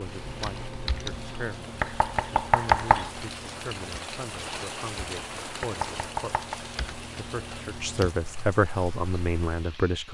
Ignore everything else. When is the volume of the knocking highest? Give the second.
3 s.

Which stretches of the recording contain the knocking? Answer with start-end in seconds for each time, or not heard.
1.8-3.1, 5.6-6.6.